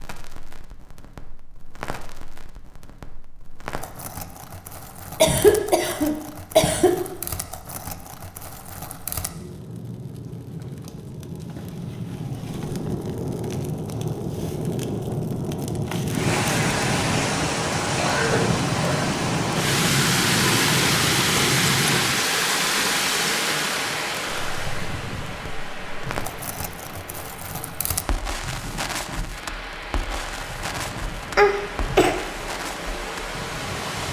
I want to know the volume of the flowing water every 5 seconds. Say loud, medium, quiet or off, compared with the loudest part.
off, off, off, loud, loud, quiet, medium.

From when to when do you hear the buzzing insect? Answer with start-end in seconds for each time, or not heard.
not heard.